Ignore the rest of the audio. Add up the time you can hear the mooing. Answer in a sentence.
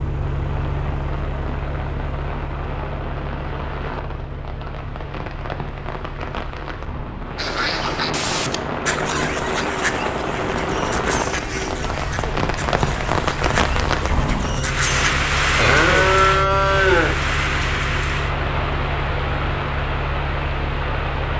You can hear the mooing for 2 seconds altogether.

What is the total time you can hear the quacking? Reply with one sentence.
The quacking can be heard for 8 seconds in total.